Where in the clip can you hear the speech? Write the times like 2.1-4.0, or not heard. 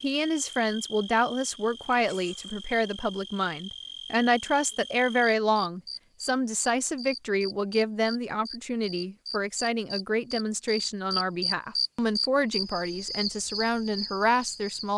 0.0-14.9.